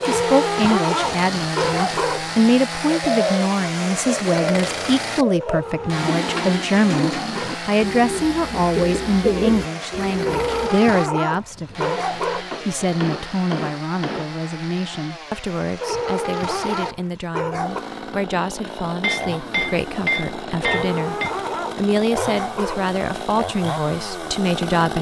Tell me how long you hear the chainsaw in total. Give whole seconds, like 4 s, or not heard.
25 s.